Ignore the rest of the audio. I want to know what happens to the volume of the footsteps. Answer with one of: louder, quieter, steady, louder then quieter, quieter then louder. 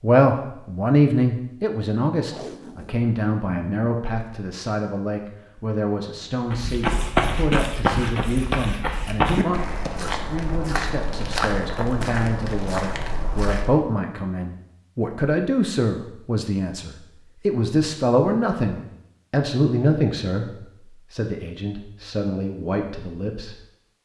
quieter.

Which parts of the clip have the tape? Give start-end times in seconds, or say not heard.
2.2-3.0.